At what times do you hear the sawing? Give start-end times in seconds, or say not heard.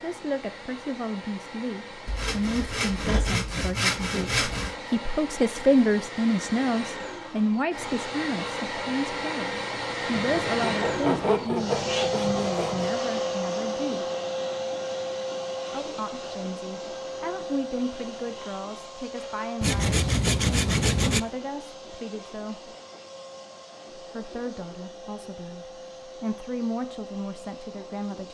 2.0-4.8, 10.2-12.9, 19.6-21.2.